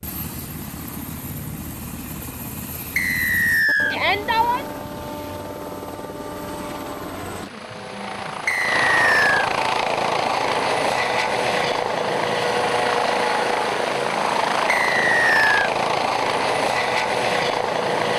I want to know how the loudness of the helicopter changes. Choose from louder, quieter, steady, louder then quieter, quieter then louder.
louder.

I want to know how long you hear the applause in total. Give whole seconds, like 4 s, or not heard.
not heard.